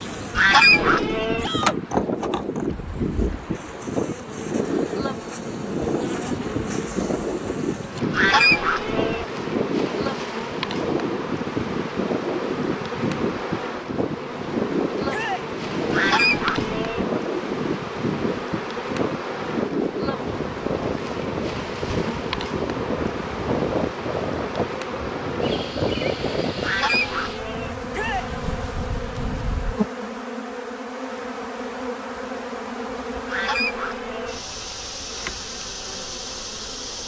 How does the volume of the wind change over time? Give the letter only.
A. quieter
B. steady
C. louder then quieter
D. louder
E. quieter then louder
B.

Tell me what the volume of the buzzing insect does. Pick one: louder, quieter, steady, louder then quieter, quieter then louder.
steady.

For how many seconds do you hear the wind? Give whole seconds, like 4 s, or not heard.
30 s.